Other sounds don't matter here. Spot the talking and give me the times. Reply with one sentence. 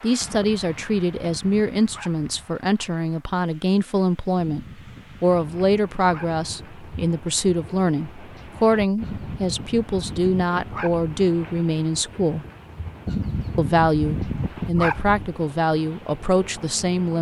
You can hear the talking from 0.0 to 12.4 s and from 13.6 to 17.1 s.